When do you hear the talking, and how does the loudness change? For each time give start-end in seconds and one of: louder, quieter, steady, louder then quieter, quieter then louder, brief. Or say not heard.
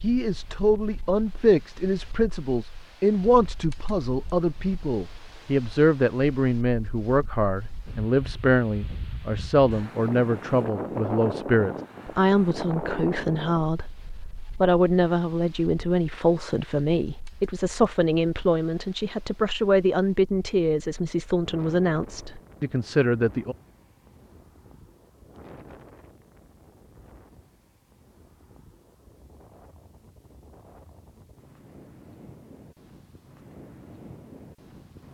0.0-23.6 steady.